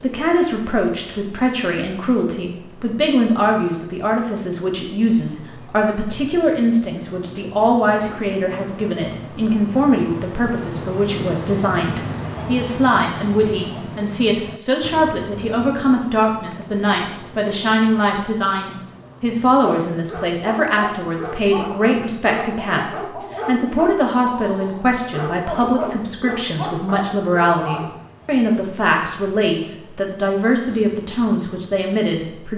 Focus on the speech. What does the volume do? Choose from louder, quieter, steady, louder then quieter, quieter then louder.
steady.